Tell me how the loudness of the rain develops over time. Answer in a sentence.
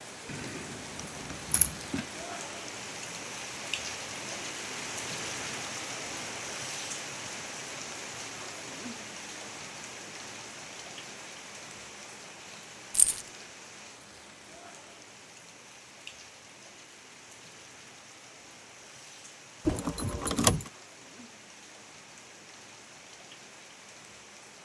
The volume of the rain goes down.